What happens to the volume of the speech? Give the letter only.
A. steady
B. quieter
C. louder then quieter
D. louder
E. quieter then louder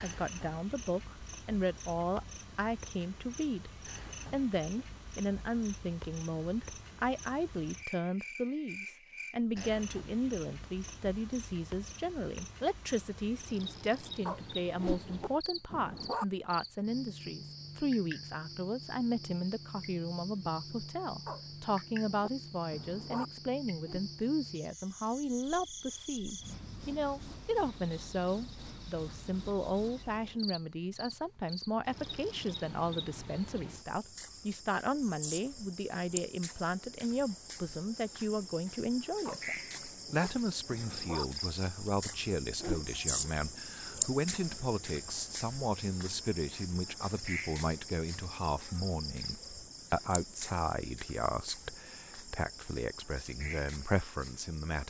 A.